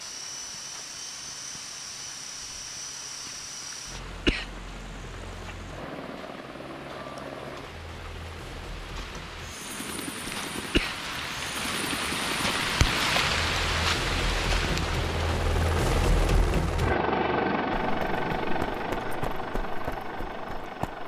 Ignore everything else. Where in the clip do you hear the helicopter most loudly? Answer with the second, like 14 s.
17 s.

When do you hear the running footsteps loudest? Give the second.
19 s.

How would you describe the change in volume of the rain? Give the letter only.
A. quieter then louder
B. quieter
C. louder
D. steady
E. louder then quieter
C.